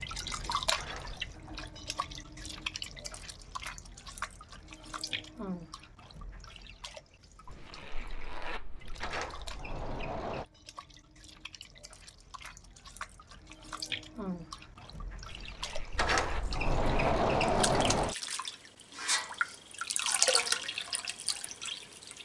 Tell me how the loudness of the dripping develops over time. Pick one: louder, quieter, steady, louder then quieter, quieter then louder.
quieter then louder.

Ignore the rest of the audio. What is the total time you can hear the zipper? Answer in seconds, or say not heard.
4 s.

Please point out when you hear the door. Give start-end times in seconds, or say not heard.
0.7-1.3, 8.9-10.4, 15.9-18.1.